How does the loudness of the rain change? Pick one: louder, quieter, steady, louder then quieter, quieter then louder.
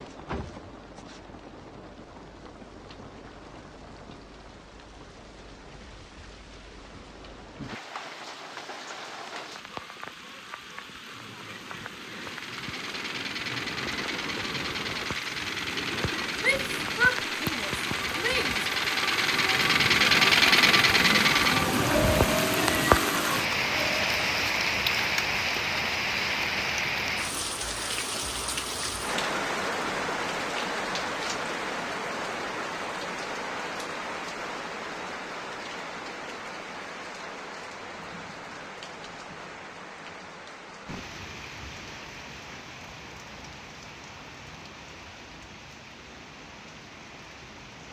louder then quieter.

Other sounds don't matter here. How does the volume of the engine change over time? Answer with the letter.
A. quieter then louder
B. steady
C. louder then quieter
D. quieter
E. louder
C.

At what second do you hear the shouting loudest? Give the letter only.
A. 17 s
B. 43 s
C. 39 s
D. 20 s
A.